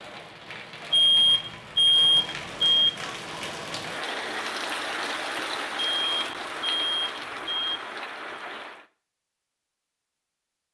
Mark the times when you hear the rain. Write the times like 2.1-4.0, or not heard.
0.0-8.8.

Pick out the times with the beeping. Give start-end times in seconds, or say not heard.
0.9-2.9, 5.8-7.8.